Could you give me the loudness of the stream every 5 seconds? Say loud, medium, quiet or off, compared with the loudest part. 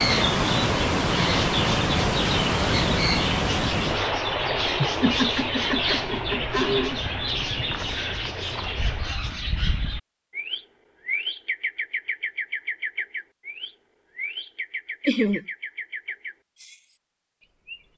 loud, medium, off, off.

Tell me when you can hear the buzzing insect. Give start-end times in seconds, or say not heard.
not heard.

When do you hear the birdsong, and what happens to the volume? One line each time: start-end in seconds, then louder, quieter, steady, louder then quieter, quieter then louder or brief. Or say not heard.
0.0-17.9 quieter.